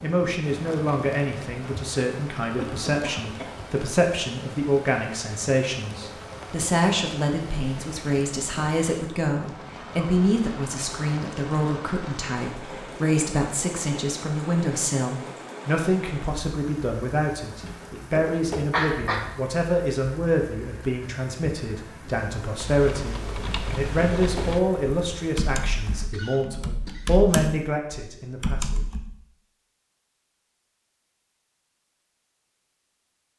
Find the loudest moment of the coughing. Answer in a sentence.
The volume of the coughing peaks at 19 seconds.